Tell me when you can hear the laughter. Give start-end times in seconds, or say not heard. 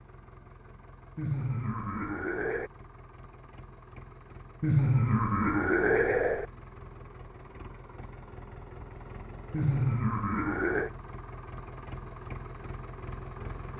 1.1-2.7, 4.6-6.5, 9.5-10.9.